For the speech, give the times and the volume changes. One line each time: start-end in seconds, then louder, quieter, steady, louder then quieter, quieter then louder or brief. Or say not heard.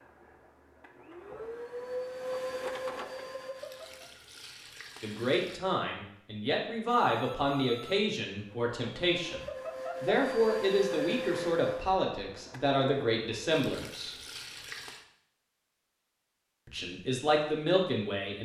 5.0-14.2 steady
16.6-18.4 brief.